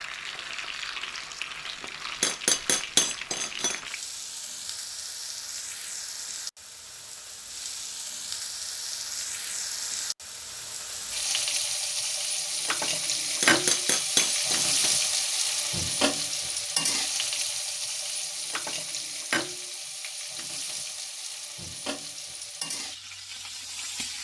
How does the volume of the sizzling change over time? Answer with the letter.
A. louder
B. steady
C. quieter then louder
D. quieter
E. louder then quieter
E.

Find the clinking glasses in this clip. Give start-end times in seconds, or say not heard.
2.2-3.8, 13.4-14.9.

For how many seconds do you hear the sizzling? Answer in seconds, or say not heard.
24 s.